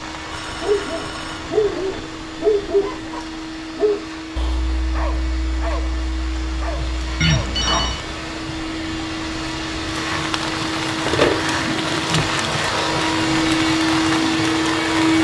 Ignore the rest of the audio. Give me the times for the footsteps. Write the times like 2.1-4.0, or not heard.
not heard.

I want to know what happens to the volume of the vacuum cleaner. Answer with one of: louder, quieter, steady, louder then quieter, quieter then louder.
louder.